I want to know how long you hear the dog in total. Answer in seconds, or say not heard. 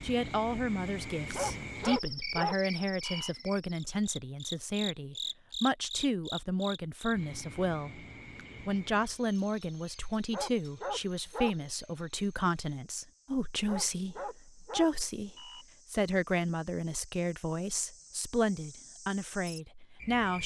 5 s.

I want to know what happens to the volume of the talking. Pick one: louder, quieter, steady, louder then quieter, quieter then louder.
steady.